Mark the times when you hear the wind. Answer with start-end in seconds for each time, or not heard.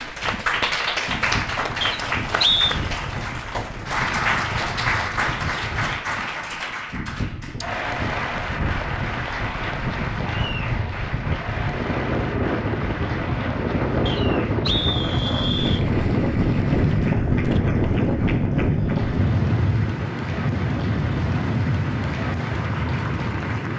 0.0-23.7.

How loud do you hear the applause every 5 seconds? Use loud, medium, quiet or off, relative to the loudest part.
loud, loud, medium, quiet, medium.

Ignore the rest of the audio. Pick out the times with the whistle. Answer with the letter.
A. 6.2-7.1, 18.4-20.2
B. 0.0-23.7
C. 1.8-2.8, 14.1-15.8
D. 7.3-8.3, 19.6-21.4
C.